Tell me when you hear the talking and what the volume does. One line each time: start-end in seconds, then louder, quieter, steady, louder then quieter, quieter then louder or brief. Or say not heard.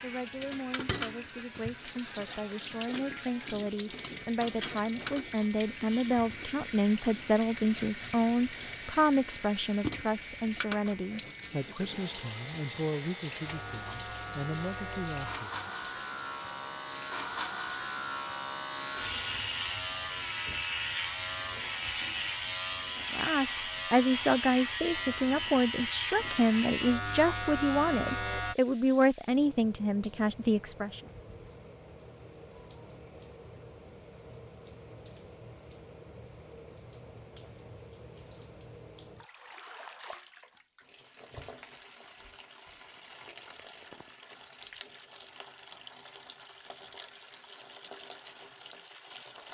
0.0-15.7 louder then quieter
23.1-31.0 steady.